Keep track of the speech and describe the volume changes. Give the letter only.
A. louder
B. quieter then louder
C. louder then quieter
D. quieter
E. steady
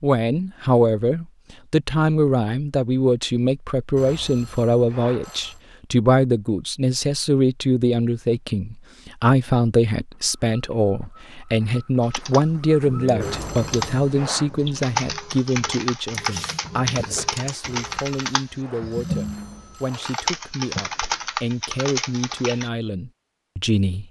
D.